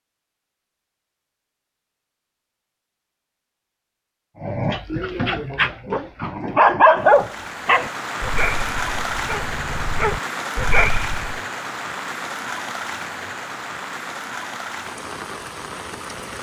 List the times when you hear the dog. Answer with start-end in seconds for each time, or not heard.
4.4-11.4.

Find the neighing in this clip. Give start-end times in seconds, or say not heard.
not heard.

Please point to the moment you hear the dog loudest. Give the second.
7 s.